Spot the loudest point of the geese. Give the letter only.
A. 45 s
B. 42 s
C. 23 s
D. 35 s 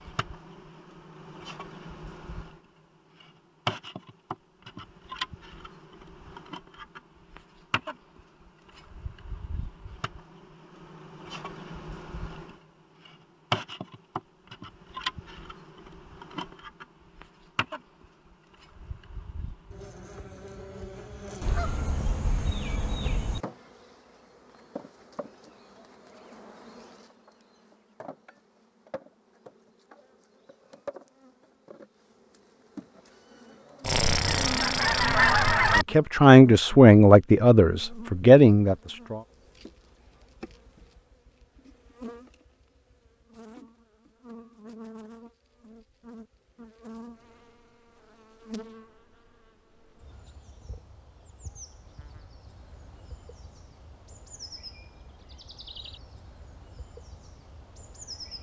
D.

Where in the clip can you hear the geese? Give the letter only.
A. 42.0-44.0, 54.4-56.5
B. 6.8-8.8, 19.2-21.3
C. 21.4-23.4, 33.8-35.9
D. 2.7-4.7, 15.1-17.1
C.